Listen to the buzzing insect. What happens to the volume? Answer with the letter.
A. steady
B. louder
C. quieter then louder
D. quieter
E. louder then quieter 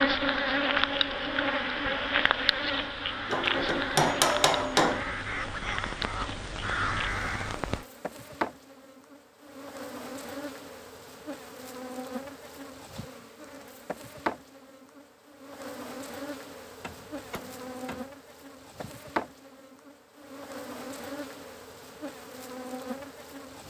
D.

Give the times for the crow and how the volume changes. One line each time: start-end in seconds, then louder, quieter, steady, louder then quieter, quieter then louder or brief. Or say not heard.
0.0-7.8 louder.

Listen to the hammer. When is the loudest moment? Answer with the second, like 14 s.
4 s.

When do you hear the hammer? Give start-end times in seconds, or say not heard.
3.2-5.0, 16.8-18.1.